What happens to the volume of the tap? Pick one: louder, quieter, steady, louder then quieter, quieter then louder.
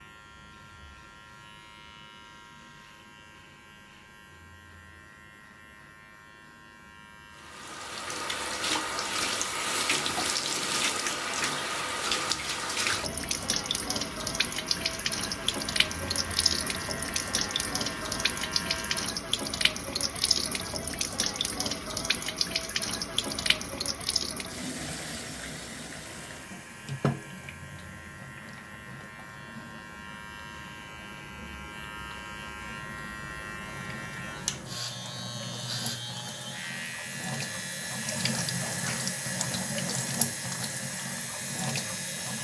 quieter then louder.